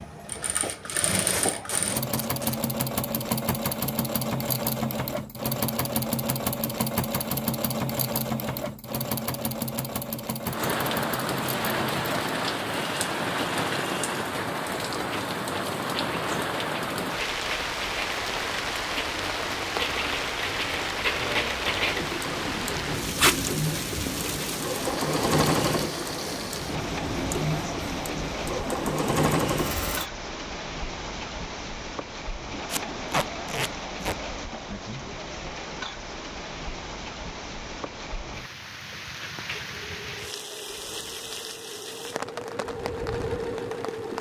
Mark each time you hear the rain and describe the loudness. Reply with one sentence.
You can hear the rain from 10.4 to 44.1 s, getting quieter.